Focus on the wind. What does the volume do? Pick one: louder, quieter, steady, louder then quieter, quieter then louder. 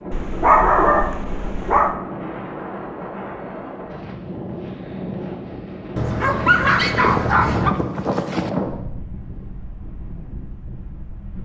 louder then quieter.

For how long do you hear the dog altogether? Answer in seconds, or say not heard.
4 s.